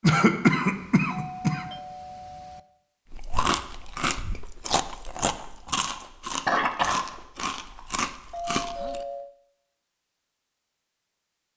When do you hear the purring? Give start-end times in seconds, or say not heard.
not heard.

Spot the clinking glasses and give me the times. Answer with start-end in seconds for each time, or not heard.
not heard.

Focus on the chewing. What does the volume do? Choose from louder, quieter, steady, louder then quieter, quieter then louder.
steady.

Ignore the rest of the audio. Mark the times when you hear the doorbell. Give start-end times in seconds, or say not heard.
0.6-2.6, 7.6-9.3.